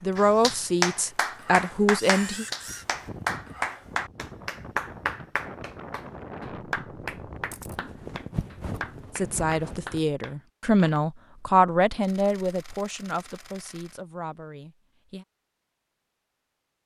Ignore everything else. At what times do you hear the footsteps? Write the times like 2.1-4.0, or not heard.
not heard.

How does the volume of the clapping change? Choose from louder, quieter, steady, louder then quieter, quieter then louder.
quieter.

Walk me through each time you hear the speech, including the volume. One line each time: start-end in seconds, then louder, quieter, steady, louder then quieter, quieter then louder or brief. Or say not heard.
0.0-2.5 brief
9.2-15.2 louder then quieter.